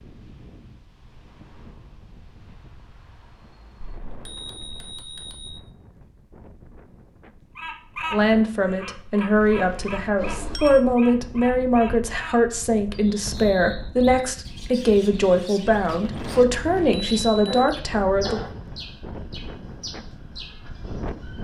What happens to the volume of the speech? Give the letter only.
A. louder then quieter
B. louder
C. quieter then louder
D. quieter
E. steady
E.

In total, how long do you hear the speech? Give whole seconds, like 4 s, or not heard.
10 s.